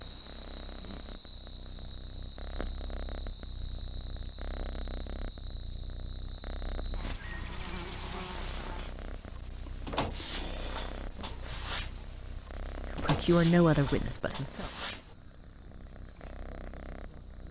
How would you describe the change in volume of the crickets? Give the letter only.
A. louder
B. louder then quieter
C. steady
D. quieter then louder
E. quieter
C.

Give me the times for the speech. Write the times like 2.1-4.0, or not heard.
12.9-14.7.